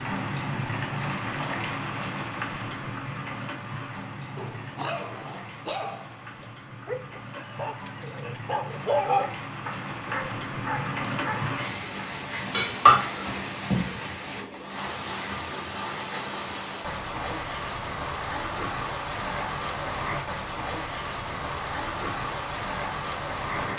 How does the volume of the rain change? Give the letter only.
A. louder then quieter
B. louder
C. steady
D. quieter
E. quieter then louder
E.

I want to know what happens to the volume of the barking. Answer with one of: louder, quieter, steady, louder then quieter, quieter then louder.
louder then quieter.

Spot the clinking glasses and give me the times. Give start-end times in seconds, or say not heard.
12.5-13.9.